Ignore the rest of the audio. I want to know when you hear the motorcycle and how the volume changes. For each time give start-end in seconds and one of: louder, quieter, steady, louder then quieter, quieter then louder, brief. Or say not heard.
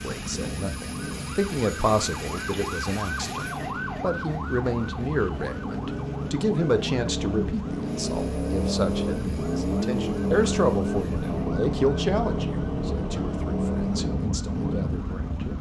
0.0-15.5 louder.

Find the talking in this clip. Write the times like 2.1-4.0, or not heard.
0.0-15.5.